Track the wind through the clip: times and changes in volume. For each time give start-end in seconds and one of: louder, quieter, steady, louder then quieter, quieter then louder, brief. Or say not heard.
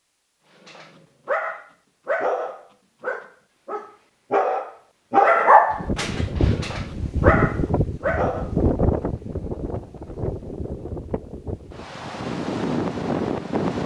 5.7-13.8 quieter then louder.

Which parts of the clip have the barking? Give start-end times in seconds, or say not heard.
0.7-8.6.